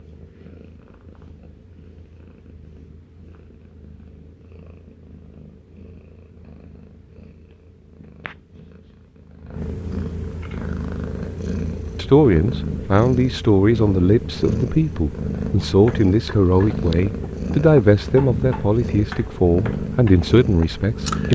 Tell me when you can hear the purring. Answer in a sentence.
The purring can be heard from 0.0 to 21.3 s.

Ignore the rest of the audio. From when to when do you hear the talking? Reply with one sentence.
You can hear the talking from 11.9 to 21.3 s.